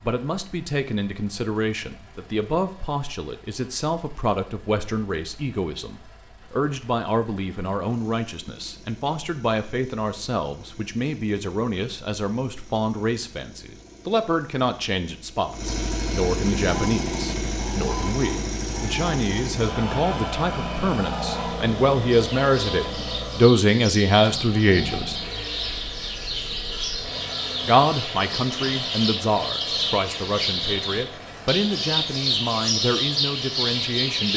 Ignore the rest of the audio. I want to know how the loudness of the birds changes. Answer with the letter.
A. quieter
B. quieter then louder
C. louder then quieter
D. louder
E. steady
D.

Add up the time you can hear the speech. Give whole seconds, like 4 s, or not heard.
32 s.